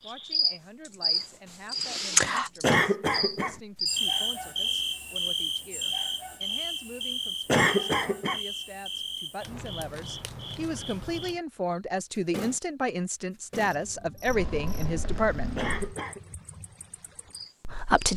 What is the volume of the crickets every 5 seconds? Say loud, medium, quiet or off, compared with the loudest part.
loud, medium, quiet, quiet.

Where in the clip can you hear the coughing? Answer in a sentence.
The coughing can be heard from 2.6 to 3.6 s, from 7.5 to 8.4 s and from 15.6 to 16.2 s.